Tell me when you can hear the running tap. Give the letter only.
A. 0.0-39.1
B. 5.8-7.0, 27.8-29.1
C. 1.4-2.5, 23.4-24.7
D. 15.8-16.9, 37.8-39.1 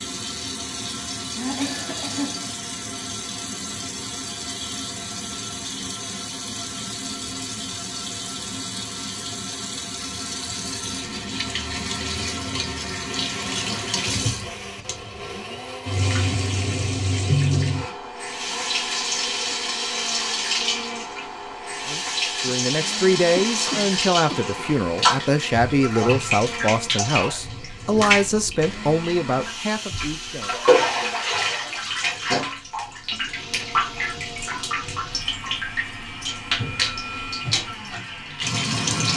A.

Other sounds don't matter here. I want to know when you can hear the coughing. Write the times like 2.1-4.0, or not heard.
1.4-2.5, 23.4-24.7.